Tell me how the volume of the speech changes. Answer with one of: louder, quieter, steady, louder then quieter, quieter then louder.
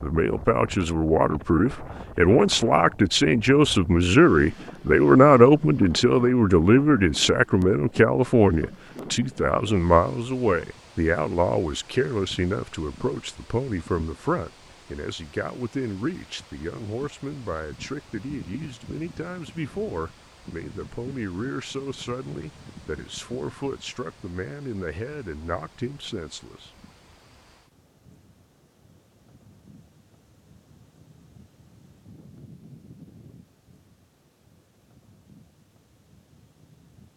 quieter.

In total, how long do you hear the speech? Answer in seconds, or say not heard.
27 s.